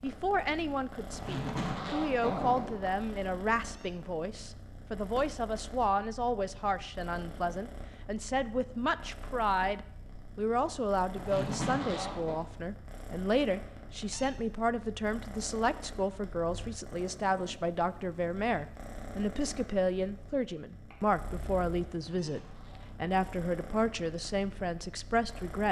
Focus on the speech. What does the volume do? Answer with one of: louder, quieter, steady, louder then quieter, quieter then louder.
steady.